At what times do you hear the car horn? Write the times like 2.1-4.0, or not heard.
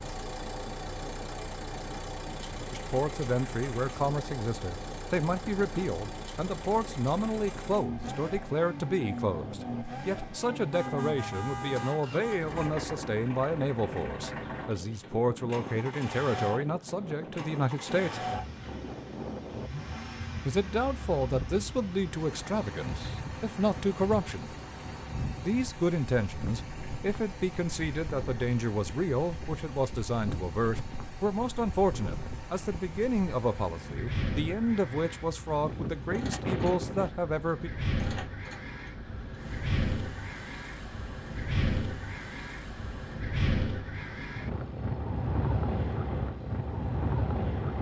10.7-12.7.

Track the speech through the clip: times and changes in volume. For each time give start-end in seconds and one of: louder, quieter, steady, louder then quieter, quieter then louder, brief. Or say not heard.
2.7-18.2 steady
20.4-24.6 quieter then louder
25.4-37.7 steady.